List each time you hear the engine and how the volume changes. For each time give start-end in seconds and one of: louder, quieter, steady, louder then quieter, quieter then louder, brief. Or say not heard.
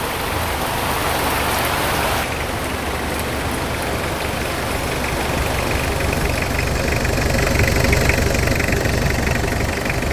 0.0-10.0 louder.